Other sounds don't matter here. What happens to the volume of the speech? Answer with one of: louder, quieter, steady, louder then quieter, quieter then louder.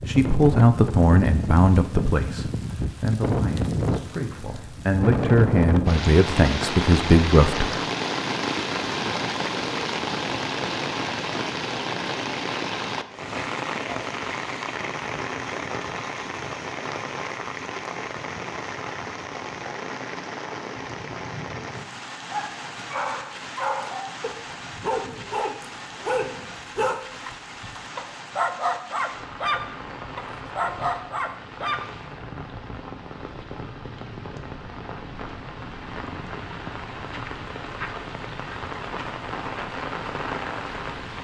quieter then louder.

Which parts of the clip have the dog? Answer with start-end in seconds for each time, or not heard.
22.2-31.8.